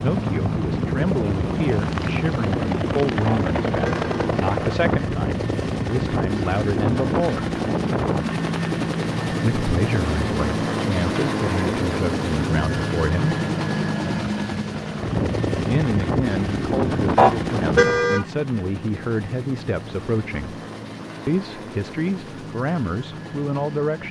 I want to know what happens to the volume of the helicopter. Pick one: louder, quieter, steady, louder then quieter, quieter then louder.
quieter.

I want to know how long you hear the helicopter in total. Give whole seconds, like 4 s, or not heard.
24 s.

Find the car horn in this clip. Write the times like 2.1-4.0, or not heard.
3.2-4.3, 17.1-18.2.